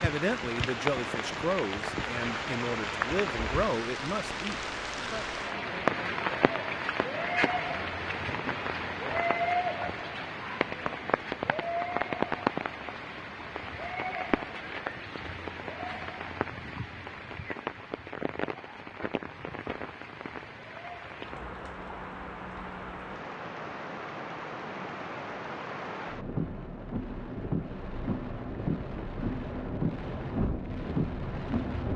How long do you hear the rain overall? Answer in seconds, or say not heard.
32 s.